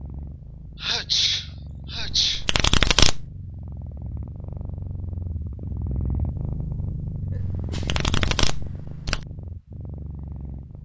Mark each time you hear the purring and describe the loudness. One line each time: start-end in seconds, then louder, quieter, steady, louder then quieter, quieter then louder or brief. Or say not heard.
0.0-10.8 louder then quieter.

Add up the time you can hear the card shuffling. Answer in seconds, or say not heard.
3 s.